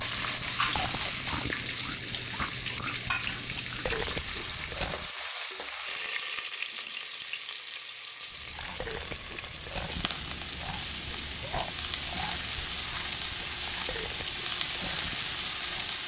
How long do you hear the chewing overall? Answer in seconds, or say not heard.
13 s.